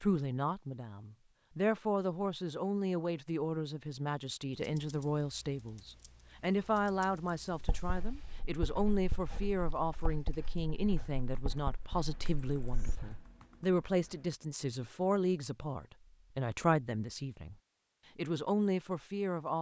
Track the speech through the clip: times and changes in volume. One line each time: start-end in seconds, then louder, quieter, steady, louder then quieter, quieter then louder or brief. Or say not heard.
0.0-17.6 steady
18.1-19.5 brief.